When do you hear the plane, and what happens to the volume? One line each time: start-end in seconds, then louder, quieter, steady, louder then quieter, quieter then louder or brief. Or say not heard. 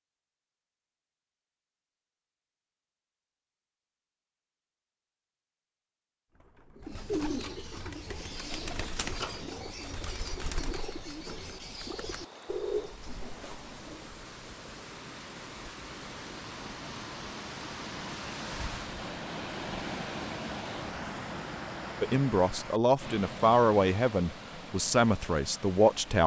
not heard.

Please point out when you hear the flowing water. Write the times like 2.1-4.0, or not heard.
7.8-26.2.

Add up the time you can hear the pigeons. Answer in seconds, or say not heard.
8 s.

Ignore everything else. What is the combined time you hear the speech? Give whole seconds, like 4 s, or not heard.
4 s.